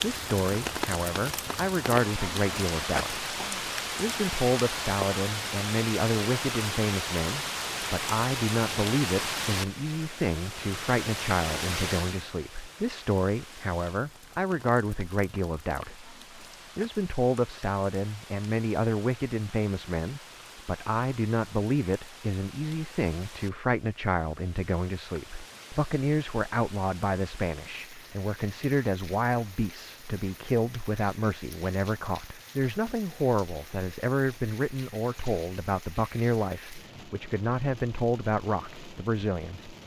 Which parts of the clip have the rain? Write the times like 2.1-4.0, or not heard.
0.0-39.8.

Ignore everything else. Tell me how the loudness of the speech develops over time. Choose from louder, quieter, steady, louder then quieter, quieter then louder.
steady.